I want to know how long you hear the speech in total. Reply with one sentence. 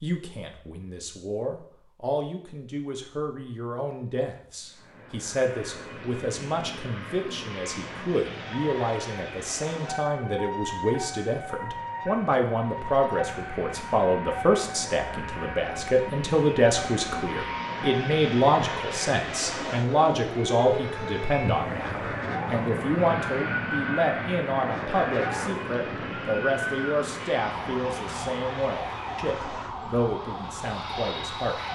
You can hear the speech for 32 seconds altogether.